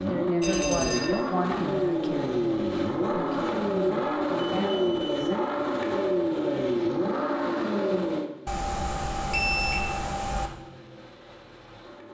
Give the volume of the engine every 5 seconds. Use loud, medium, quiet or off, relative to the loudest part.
loud, loud, quiet.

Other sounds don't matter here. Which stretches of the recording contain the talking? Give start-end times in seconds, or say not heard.
0.0-5.4.